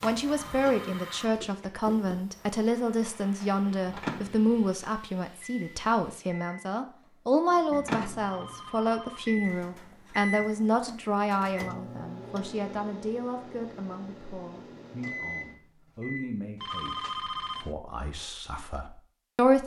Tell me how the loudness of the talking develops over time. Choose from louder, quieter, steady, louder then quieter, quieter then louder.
quieter.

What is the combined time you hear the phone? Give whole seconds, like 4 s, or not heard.
3 s.